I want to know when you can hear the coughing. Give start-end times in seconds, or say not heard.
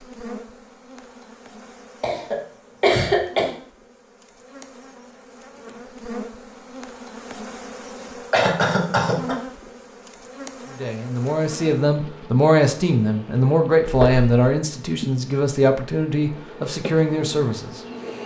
2.0-3.5, 8.3-9.3, 13.8-14.2.